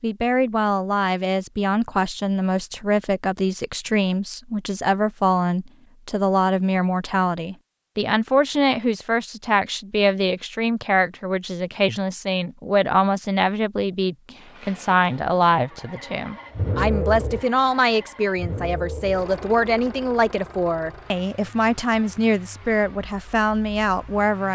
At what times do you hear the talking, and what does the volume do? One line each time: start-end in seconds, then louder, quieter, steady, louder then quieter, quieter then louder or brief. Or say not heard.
0.0-24.4 steady.